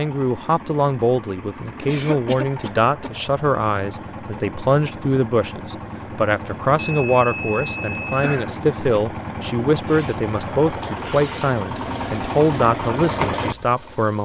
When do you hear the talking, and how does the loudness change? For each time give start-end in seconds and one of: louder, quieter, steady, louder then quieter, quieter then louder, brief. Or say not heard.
0.0-14.2 steady.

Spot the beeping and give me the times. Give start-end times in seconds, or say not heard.
6.8-8.4.